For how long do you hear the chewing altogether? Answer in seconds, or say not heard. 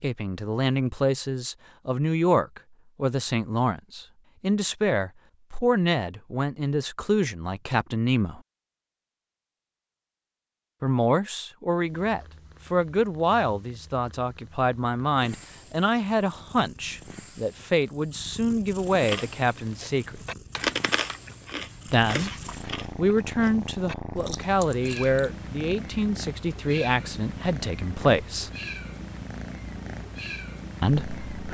6 s.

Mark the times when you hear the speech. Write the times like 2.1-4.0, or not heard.
0.0-8.4, 10.8-20.2, 21.9-22.3, 22.9-28.5, 30.8-31.4.